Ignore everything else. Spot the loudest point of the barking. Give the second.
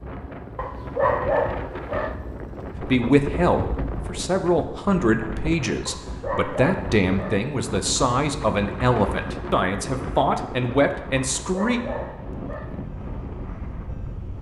1 s.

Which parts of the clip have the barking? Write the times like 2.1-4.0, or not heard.
0.6-2.1, 5.8-7.5, 11.4-12.7.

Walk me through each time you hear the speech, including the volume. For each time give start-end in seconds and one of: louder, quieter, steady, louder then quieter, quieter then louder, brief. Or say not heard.
2.8-11.8 steady.